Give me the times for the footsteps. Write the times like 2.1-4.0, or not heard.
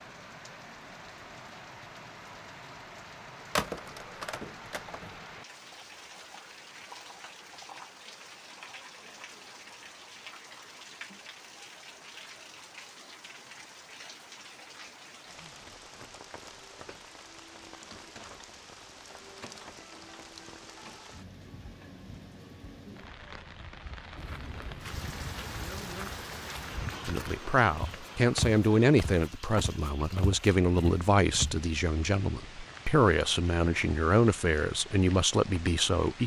24.1-31.6.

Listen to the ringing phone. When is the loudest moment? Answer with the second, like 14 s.
4 s.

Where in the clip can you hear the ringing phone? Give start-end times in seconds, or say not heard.
3.5-5.2.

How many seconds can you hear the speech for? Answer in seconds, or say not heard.
9 s.